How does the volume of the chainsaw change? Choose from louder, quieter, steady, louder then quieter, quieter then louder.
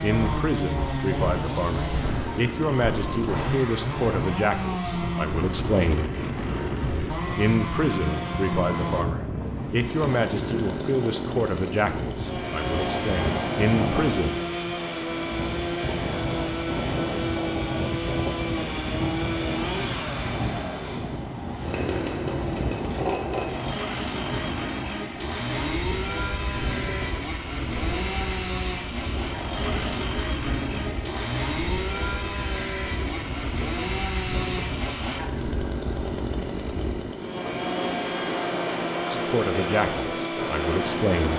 steady.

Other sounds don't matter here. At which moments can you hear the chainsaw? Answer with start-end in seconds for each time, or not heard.
0.0-41.3.